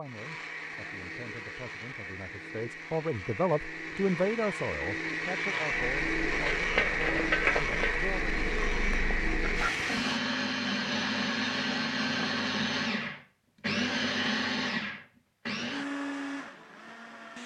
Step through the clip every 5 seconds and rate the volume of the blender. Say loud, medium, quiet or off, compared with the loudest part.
medium, loud, loud, medium.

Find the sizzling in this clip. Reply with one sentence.
You can hear the sizzling from 5.5 to 10.2 s.